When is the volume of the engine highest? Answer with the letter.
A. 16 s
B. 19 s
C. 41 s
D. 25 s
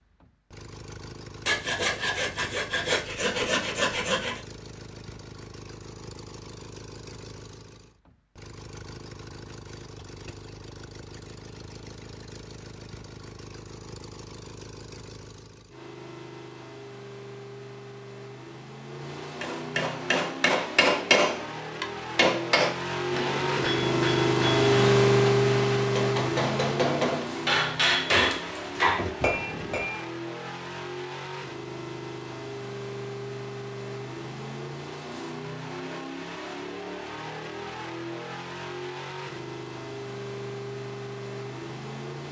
D.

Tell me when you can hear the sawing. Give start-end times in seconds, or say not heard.
1.4-4.4.